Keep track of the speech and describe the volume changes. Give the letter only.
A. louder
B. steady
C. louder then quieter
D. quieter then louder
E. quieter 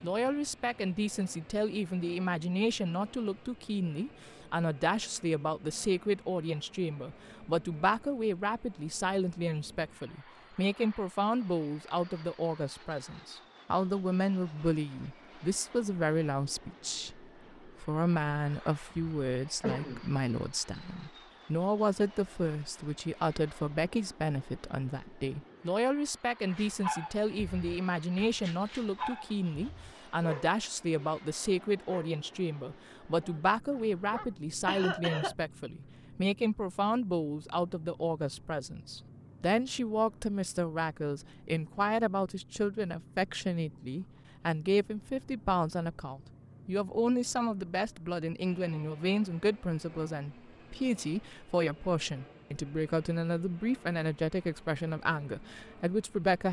B.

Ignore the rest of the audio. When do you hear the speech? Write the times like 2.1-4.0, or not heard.
0.0-56.4.